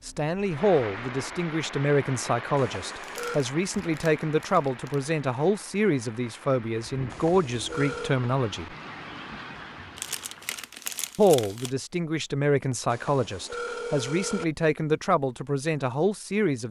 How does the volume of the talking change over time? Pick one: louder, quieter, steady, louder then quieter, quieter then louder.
steady.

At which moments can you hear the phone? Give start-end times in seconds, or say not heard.
2.5-3.4, 7.1-8.2, 12.9-14.4.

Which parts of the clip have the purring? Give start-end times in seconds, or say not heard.
not heard.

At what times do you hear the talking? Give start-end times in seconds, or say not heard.
0.1-8.7, 11.2-16.6.